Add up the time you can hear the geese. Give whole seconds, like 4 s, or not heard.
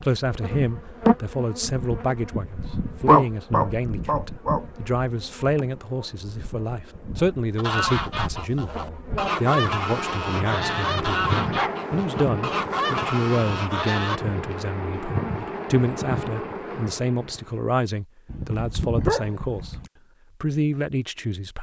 7 s.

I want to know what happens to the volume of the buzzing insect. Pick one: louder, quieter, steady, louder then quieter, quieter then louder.
quieter then louder.